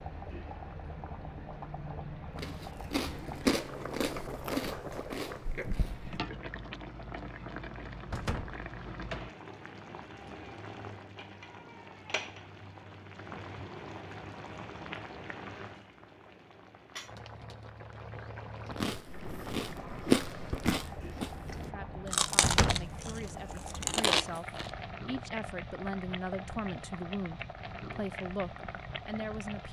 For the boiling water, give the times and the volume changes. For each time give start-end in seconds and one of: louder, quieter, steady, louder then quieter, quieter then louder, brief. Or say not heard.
0.0-29.6 steady.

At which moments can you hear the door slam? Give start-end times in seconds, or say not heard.
8.1-8.6, 22.4-22.9.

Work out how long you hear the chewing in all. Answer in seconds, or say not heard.
10 s.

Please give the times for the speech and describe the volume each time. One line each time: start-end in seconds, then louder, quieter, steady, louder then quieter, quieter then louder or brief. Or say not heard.
21.6-29.6 louder.